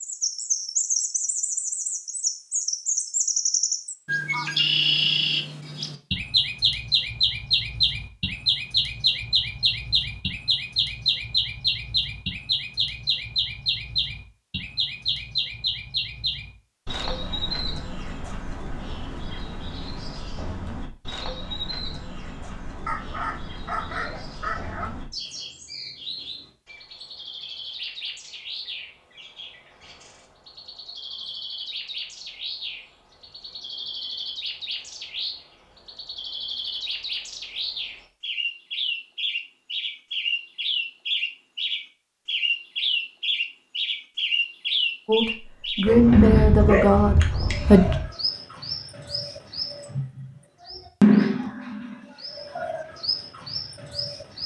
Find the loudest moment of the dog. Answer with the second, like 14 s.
47 s.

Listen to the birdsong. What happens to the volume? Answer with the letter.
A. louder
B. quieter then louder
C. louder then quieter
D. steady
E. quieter
B.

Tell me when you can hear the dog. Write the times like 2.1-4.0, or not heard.
22.9-24.9, 45.9-48.0.